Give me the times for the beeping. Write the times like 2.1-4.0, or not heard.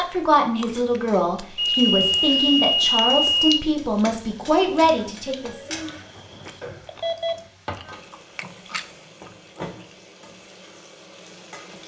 1.6-3.6, 6.6-7.3.